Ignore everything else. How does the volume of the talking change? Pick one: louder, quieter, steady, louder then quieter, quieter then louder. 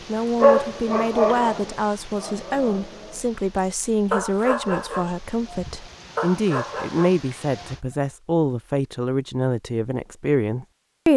steady.